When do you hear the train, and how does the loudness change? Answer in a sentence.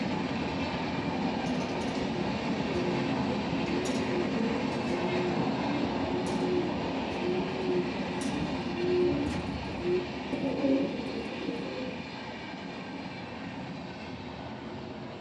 The train can be heard from 0.0 to 15.1 s, getting quieter.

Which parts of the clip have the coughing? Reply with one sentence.
You can't hear the coughing here.